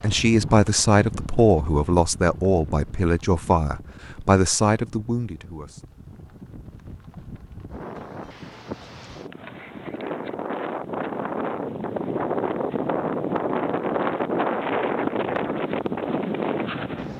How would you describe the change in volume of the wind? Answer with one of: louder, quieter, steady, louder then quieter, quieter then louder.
quieter then louder.